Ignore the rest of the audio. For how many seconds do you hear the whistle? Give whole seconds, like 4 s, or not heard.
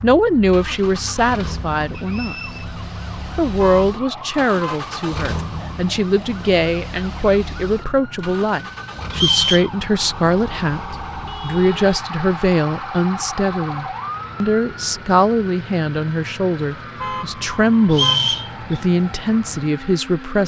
2 s.